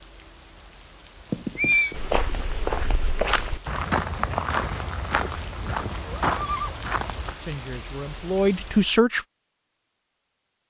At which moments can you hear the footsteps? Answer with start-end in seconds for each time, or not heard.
1.9-7.3.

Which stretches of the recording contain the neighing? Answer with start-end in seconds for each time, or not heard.
1.3-1.9, 6.0-6.8.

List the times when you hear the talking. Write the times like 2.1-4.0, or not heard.
7.3-9.2.